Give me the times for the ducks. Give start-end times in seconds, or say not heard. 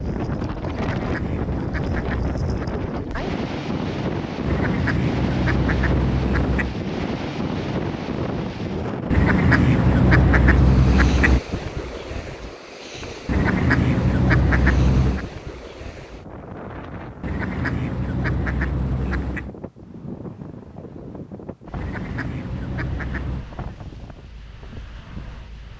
0.7-2.8, 4.5-6.8, 9.1-11.4, 13.2-15.2, 17.2-19.5, 21.8-23.4.